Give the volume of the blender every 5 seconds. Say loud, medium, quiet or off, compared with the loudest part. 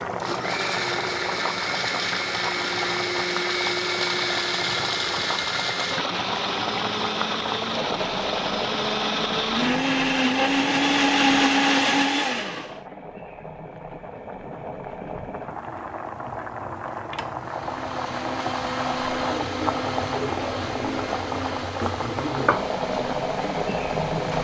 medium, medium, loud, medium, quiet.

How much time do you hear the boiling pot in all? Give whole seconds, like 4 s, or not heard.
24 s.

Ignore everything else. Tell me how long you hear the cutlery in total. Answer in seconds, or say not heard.
not heard.